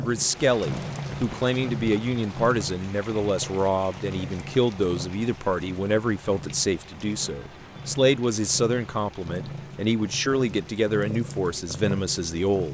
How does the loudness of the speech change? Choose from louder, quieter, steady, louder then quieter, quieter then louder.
steady.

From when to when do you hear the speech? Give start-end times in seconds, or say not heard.
0.0-12.6.